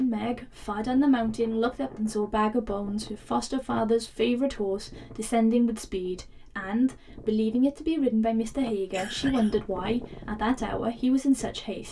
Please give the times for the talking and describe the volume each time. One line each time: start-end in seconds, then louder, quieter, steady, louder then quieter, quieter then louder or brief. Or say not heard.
0.0-11.8 steady.